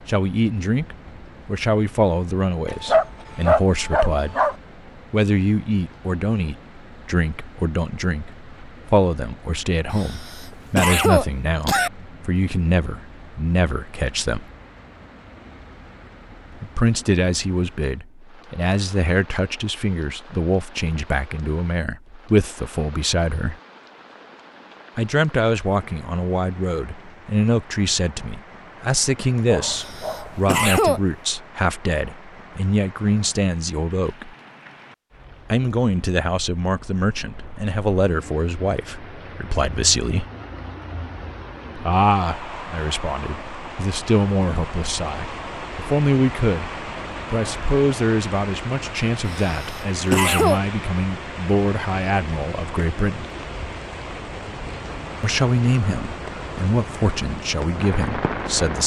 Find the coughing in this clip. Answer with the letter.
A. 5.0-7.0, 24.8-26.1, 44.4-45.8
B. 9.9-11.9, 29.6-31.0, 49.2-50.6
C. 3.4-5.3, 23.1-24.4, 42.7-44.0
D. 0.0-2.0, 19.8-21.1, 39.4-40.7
B.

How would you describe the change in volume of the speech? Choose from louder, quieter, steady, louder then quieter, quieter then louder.
steady.